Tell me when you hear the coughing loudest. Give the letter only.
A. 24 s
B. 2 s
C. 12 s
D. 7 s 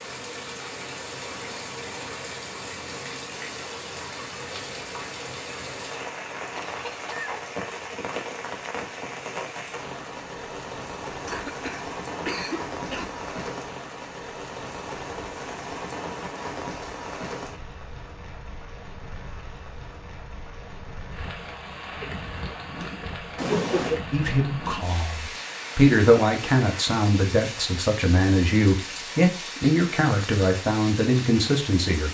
A.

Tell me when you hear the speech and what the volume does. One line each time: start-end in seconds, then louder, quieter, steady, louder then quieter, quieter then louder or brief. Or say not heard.
24.1-32.0 steady.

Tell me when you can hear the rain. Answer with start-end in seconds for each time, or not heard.
0.0-32.0.